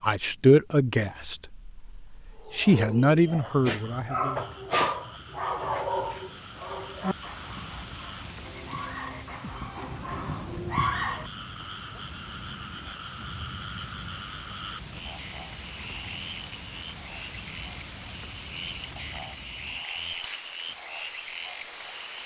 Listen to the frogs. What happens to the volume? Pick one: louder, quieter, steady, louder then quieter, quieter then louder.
louder.